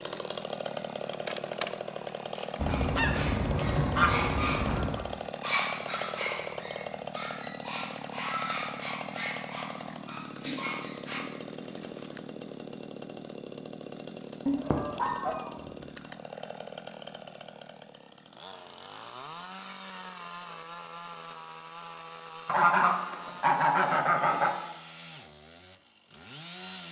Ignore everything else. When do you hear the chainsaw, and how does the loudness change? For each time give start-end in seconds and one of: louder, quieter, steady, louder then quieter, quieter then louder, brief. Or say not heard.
0.0-26.8 quieter.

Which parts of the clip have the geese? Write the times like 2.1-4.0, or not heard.
2.5-5.0, 14.4-15.5, 22.4-24.5.